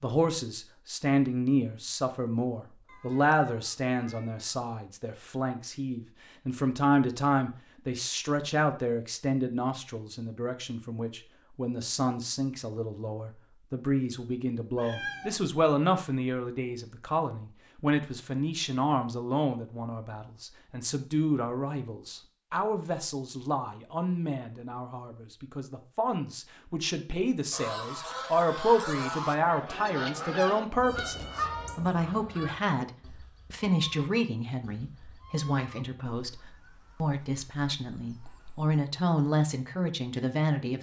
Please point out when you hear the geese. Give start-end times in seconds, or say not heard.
27.5-38.8.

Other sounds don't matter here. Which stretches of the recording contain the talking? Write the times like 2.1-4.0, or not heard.
0.0-40.7.